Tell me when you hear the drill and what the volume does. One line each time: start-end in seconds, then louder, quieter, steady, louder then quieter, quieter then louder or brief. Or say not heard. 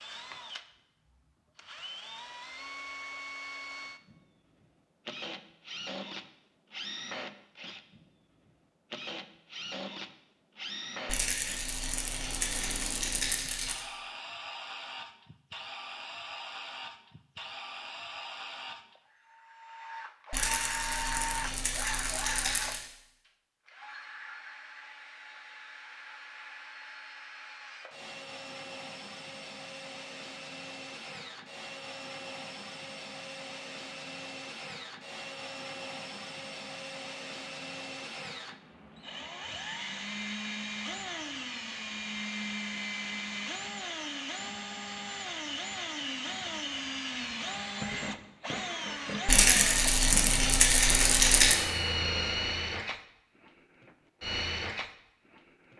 0.0-53.0 louder
54.2-55.0 brief.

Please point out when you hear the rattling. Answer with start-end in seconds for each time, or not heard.
11.1-13.8, 20.3-22.9, 49.2-51.5.